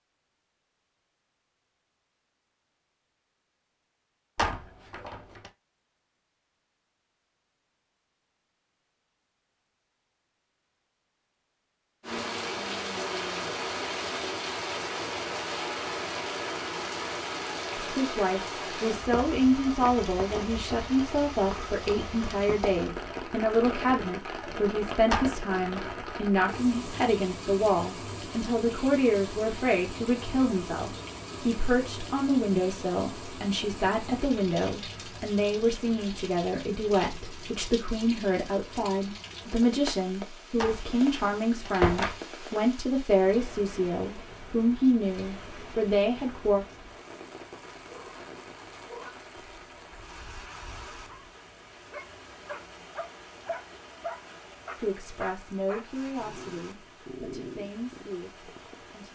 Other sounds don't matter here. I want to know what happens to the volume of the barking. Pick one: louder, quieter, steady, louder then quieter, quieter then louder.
louder.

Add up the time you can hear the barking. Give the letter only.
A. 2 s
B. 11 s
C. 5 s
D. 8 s
B.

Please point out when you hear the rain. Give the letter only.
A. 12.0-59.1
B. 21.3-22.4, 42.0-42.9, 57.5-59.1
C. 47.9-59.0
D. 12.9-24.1
A.